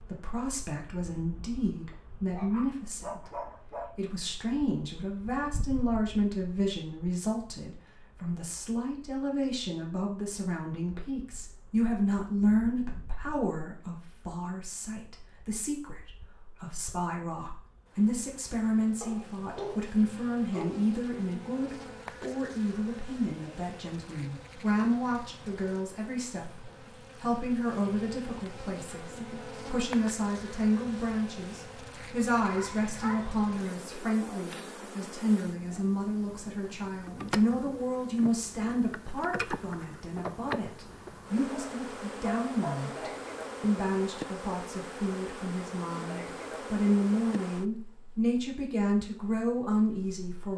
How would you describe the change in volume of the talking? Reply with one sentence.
The volume of the talking stays about the same.